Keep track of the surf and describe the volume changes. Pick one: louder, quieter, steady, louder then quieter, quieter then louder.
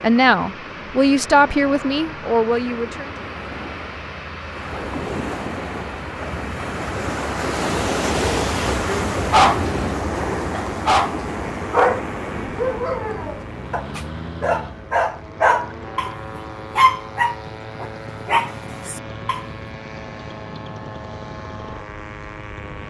louder then quieter.